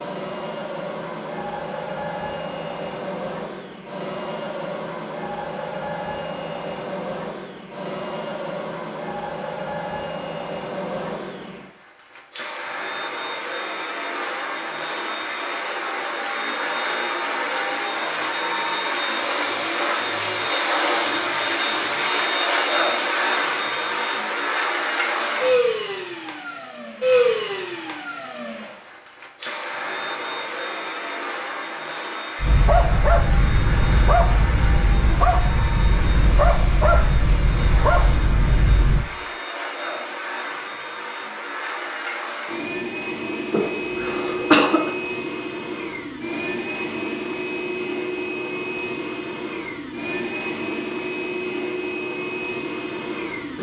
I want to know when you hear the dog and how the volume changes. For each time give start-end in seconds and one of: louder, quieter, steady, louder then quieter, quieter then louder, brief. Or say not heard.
32.4-39.0 steady.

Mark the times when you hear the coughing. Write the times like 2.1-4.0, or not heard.
43.5-44.9.